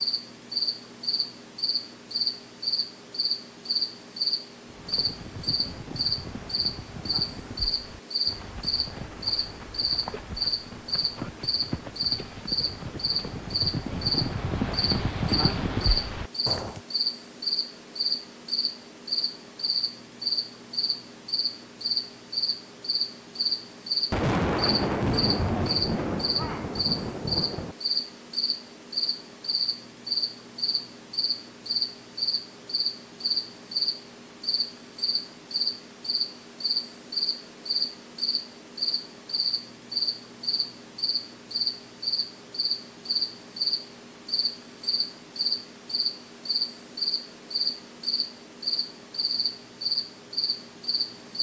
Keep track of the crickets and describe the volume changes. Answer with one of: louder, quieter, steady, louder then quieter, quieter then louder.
steady.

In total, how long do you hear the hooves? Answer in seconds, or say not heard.
12 s.